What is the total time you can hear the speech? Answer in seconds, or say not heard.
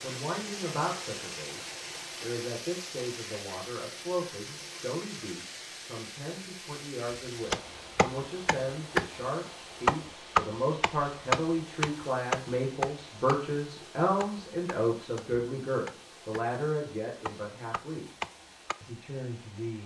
19 s.